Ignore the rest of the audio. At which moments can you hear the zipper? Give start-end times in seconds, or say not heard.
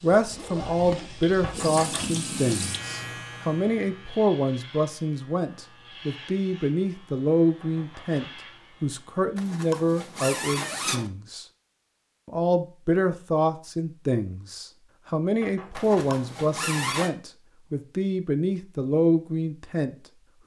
0.1-1.4, 9.3-11.1, 15.8-17.1.